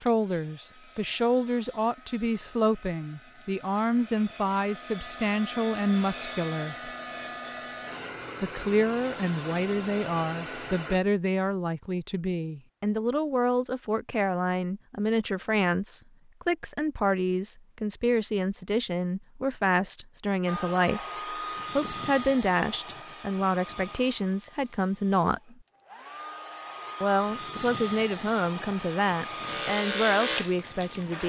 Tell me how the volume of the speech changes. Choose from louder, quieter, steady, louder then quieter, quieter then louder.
steady.